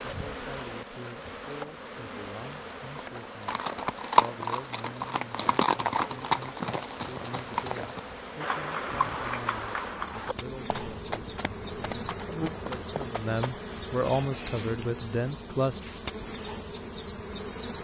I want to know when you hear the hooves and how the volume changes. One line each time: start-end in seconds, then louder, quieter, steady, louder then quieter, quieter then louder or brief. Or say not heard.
3.0-13.7 quieter.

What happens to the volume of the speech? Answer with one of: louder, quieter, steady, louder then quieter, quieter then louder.
louder.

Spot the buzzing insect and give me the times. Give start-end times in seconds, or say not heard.
0.0-17.7.